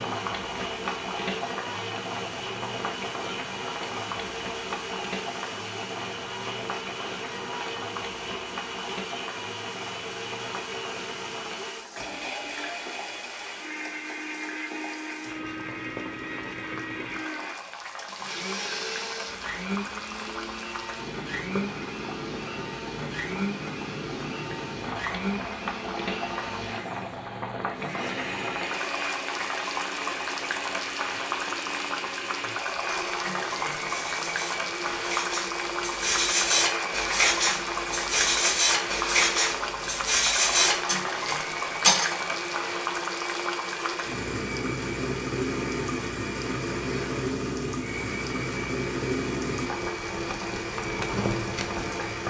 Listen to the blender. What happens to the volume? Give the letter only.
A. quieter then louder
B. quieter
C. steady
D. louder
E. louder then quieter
C.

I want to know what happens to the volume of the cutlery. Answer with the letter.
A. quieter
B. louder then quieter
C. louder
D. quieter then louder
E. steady
C.